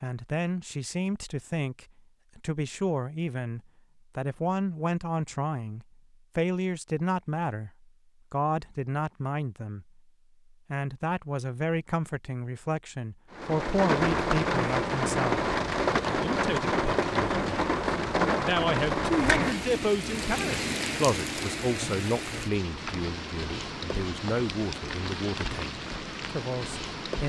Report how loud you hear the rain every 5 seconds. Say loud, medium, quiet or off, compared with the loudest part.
off, off, loud, loud, medium, medium.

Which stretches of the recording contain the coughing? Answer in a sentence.
You can't hear the coughing here.